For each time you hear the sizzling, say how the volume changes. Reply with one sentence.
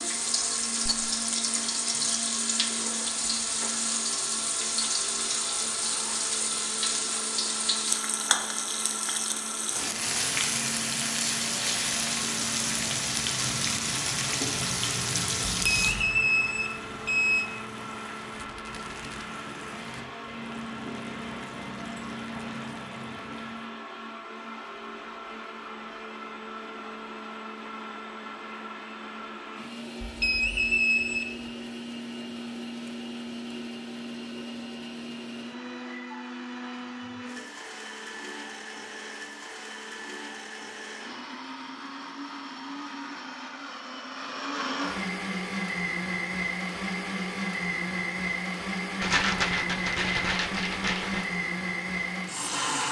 The sizzling can be heard from 0.0 to 23.6 s, getting quieter.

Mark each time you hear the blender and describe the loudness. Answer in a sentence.
You can hear the blender from 0.0 to 52.8 s, getting louder.